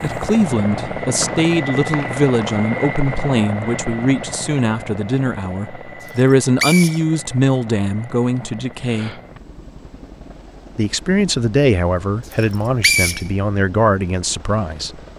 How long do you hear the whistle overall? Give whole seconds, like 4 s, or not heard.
3 s.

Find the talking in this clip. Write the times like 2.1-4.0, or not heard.
0.0-9.2, 10.8-15.1.